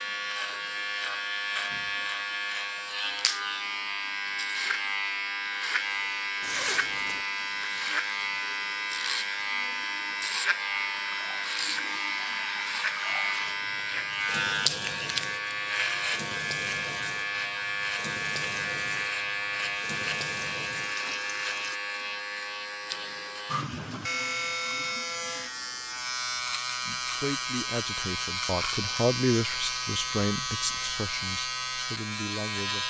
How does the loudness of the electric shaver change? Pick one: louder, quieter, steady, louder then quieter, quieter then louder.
steady.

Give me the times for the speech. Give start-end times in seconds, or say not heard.
26.9-32.8.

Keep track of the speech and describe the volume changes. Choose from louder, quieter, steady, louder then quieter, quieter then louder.
louder then quieter.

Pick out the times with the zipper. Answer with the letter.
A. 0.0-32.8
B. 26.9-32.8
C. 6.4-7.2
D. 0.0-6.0
C.